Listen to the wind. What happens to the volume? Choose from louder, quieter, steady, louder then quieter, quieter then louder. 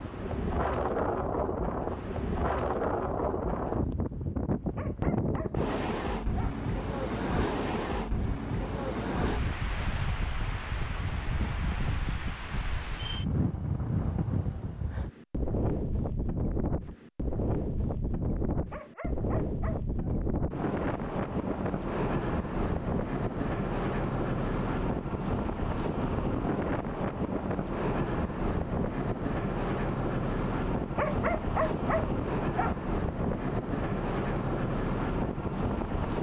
steady.